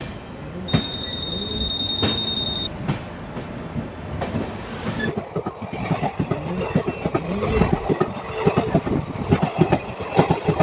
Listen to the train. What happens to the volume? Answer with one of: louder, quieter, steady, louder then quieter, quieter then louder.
louder.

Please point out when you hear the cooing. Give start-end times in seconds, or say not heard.
0.2-1.8, 6.2-7.8.